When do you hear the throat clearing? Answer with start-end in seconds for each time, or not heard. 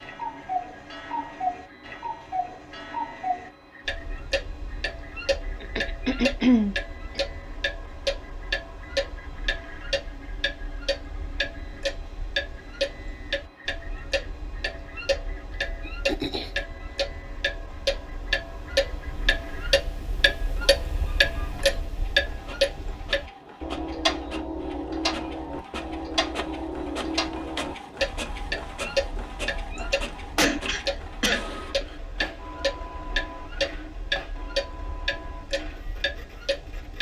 5.6-7.2, 15.8-16.6, 29.8-31.4.